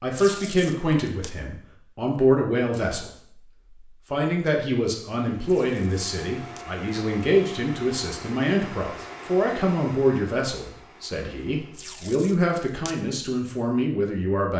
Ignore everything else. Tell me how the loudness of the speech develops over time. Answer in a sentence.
The volume of the speech stays about the same.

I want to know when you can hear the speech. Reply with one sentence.
You can hear the speech from 0.0 to 3.1 s and from 4.1 to 14.5 s.